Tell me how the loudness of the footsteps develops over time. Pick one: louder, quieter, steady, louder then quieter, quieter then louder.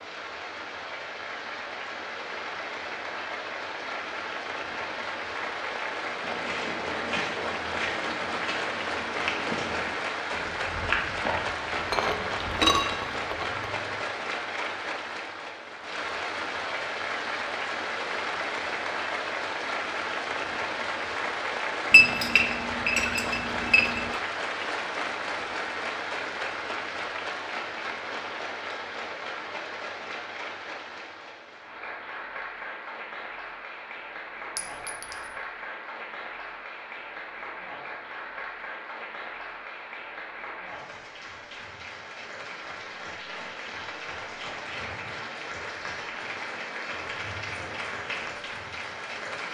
steady.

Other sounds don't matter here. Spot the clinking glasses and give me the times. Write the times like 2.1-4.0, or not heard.
11.7-14.1, 21.9-24.1, 34.5-35.3.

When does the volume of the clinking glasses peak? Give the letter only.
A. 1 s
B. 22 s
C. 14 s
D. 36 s
B.